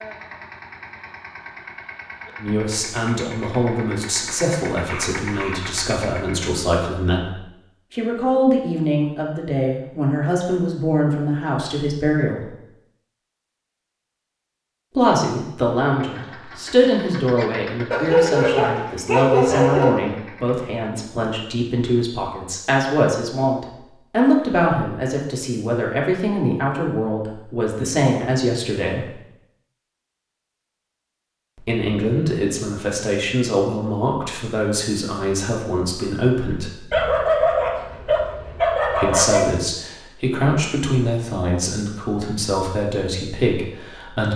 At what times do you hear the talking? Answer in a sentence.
The talking can be heard from 2.4 to 12.5 s, from 14.9 to 29.1 s, from 31.6 to 36.8 s and from 39.0 to 44.3 s.